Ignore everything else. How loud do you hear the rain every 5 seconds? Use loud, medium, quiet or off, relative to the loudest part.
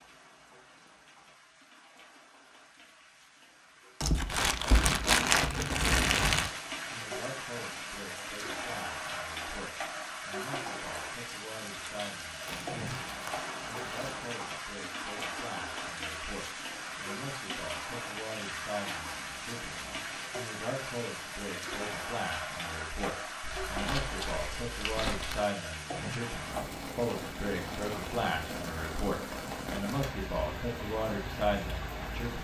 quiet, loud, loud, loud, loud, loud, loud.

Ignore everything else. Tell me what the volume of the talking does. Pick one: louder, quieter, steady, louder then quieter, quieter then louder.
louder.